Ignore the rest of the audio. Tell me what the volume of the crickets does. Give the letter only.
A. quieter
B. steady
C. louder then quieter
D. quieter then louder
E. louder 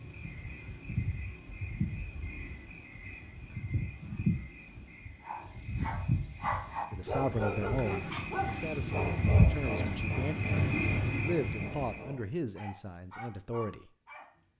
E.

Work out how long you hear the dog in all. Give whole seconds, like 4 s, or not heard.
9 s.